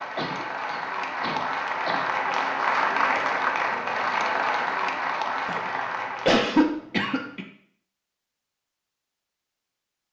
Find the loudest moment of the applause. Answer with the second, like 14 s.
3 s.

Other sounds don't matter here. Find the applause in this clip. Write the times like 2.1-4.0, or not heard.
0.0-6.5.